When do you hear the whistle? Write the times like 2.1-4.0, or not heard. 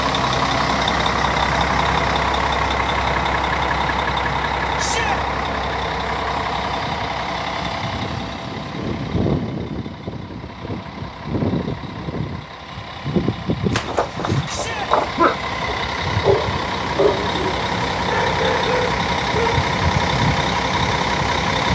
not heard.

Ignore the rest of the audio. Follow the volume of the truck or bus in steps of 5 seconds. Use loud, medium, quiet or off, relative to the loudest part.
loud, medium, medium, loud, loud.